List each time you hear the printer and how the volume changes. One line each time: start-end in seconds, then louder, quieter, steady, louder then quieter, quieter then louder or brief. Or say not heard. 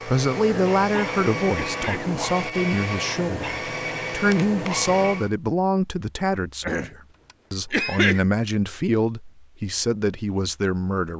0.0-5.3 steady.